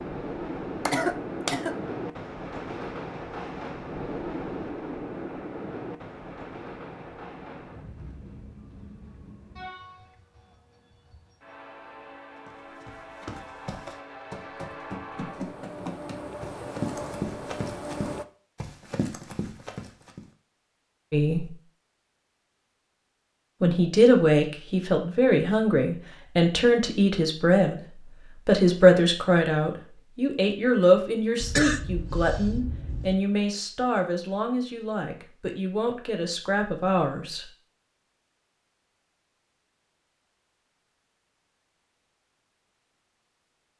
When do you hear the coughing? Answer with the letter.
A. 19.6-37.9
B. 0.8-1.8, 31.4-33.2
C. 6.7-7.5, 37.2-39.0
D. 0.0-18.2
B.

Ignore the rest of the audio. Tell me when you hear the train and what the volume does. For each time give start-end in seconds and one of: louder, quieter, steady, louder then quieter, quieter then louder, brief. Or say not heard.
0.0-18.2 quieter then louder.